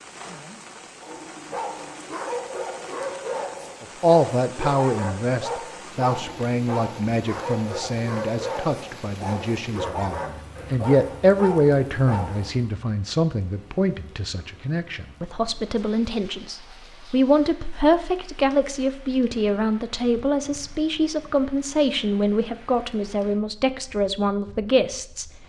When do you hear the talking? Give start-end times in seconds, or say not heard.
3.8-25.3.